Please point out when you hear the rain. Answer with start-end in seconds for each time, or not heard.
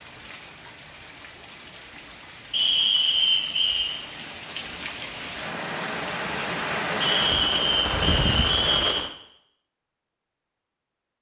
0.0-9.1.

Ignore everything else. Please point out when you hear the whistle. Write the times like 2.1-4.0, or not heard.
2.5-4.0, 7.0-9.1.